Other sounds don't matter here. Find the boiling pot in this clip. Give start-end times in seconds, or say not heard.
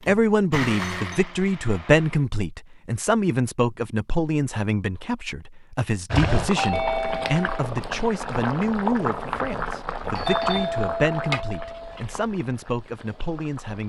6.1-13.8.